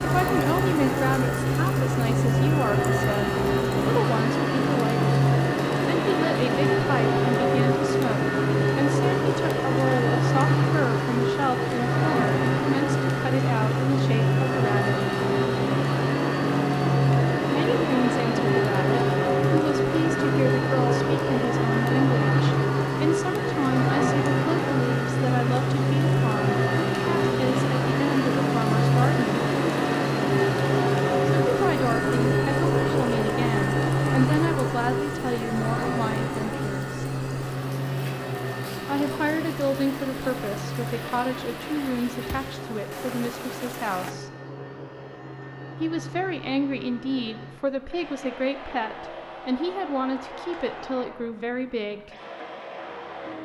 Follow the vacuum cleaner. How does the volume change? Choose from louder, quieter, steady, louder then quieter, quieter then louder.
quieter.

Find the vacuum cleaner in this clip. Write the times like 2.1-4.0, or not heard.
0.0-53.3.